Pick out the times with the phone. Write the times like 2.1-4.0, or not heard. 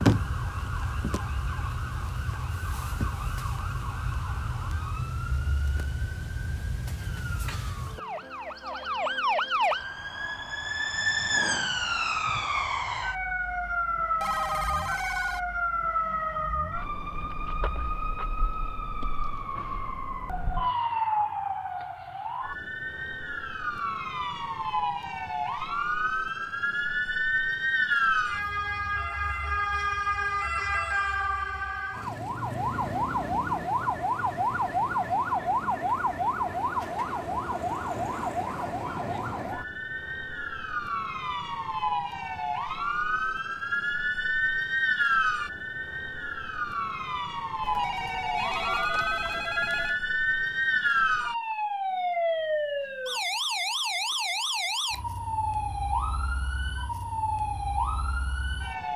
14.2-15.4, 47.6-50.0.